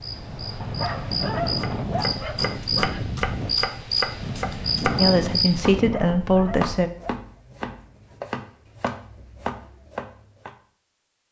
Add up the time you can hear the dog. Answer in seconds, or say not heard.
4 s.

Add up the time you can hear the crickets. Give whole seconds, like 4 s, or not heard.
6 s.